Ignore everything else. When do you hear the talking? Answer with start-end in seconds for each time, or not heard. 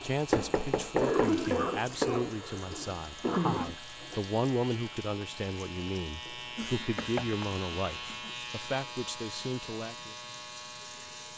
0.0-10.2.